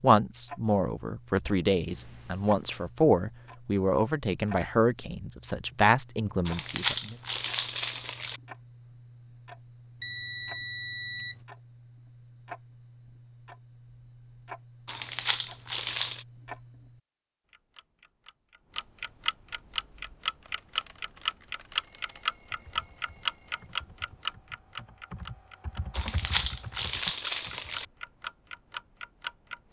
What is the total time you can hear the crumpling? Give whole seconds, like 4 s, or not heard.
5 s.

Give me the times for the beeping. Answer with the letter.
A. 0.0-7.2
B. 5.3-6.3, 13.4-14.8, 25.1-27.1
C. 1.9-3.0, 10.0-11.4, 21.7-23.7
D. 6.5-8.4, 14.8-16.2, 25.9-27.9
C.